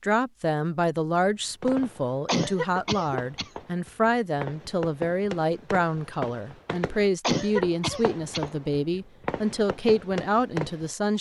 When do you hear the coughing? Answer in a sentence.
The coughing can be heard from 2.2 to 3.5 s and from 7.2 to 8.4 s.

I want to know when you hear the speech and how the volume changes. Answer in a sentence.
You can hear the speech from 0.0 to 11.1 s, at a steady volume.